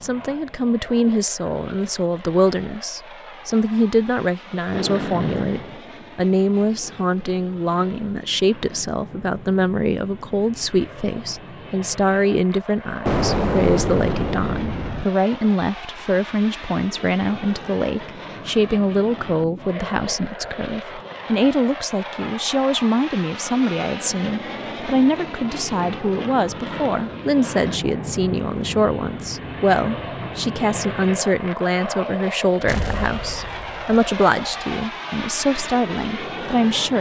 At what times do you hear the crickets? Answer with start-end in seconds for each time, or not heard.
not heard.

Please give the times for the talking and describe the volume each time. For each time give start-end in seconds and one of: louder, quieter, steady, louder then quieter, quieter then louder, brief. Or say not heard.
0.0-36.9 steady.